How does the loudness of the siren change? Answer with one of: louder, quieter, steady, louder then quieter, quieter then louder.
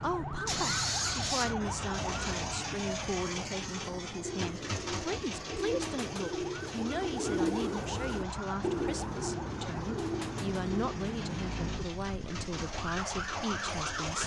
quieter then louder.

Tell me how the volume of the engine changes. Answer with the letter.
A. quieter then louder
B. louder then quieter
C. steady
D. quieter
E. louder
A.